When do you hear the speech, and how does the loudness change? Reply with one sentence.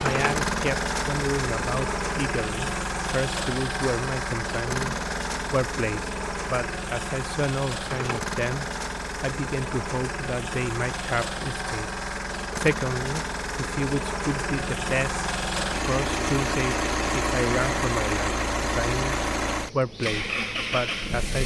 The speech can be heard from 0.0 to 21.4 s, at a steady volume.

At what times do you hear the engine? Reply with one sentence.
You can hear the engine from 0.0 to 21.4 s.